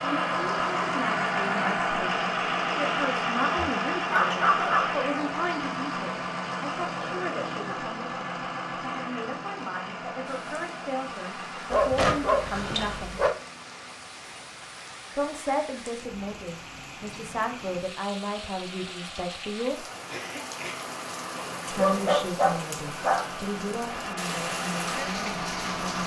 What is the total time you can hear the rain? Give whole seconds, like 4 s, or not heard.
16 s.